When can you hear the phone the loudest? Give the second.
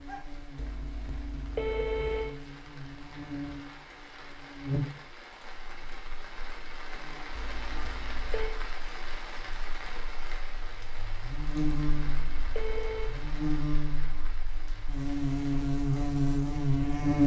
2 s.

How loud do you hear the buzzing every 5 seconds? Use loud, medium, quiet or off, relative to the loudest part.
quiet, quiet, medium, loud.